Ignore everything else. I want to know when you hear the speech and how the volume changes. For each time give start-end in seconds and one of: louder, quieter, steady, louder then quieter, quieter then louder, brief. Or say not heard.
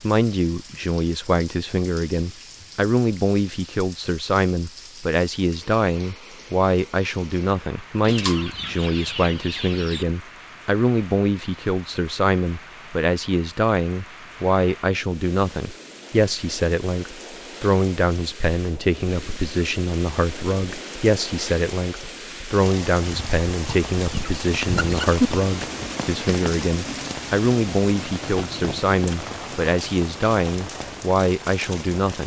0.0-32.2 steady.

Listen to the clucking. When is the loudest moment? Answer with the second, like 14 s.
25 s.